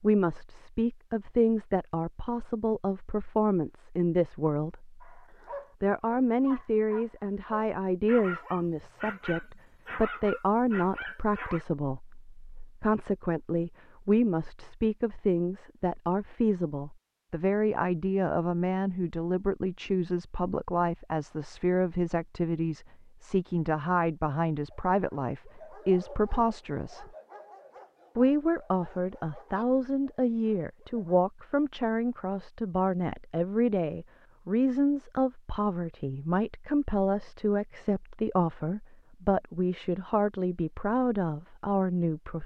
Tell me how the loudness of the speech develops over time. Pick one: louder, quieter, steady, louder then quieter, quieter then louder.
steady.